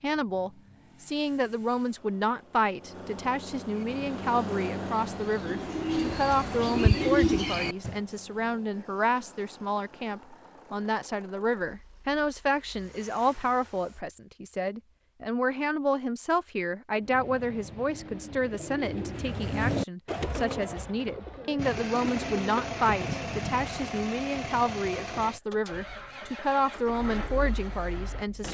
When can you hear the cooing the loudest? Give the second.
7 s.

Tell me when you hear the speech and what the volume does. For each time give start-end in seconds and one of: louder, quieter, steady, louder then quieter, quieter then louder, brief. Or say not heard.
0.0-28.4 steady.